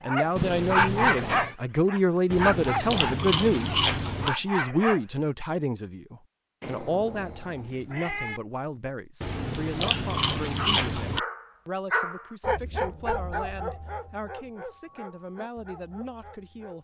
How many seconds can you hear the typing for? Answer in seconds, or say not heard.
not heard.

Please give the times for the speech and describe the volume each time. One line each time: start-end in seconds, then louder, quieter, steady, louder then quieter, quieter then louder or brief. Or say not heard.
0.0-16.7 quieter.